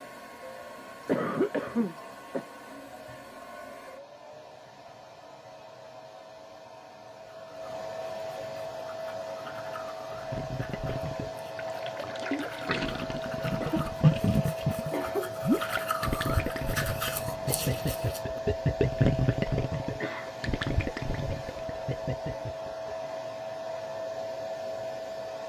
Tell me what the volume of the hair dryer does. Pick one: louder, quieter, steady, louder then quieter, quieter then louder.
louder.